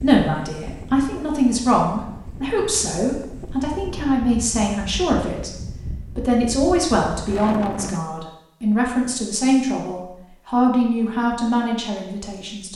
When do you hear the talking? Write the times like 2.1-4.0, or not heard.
0.0-5.5, 6.2-12.7.